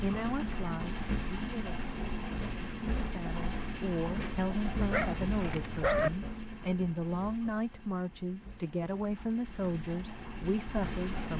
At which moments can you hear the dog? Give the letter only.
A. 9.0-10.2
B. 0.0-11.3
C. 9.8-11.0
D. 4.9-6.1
D.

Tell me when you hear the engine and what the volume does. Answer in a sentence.
You can hear the engine from 0.0 to 11.3 s, getting quieter then louder.